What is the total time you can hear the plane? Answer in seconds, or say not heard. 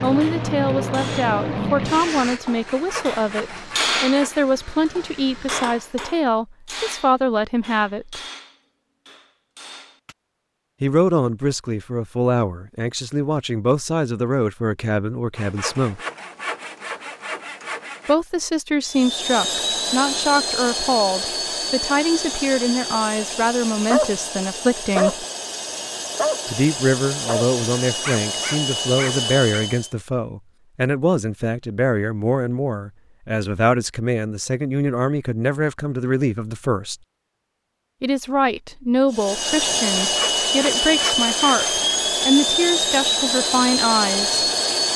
23 s.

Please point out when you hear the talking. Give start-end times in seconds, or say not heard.
0.0-8.2, 10.8-16.0, 18.1-25.2, 26.4-37.0, 38.0-44.4.